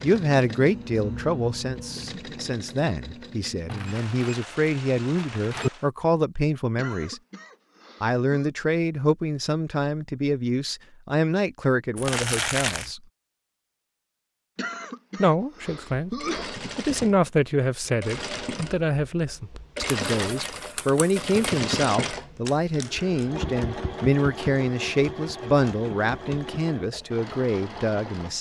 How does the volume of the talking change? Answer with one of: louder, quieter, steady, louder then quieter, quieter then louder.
steady.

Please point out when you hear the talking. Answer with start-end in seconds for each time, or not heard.
0.0-7.2, 8.0-13.0, 15.2-28.3.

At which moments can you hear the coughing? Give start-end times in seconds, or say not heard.
6.8-8.5, 14.6-16.6.